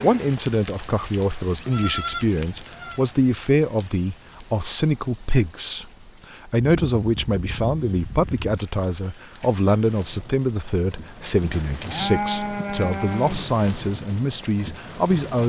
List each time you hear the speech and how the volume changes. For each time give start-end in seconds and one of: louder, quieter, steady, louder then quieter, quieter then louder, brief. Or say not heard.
0.0-15.4 steady.